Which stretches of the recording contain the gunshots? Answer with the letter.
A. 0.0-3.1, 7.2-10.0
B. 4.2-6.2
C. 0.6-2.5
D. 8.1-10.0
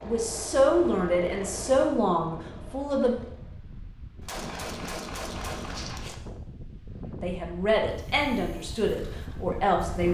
B.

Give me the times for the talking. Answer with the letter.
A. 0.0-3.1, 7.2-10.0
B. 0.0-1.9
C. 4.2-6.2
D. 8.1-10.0
A.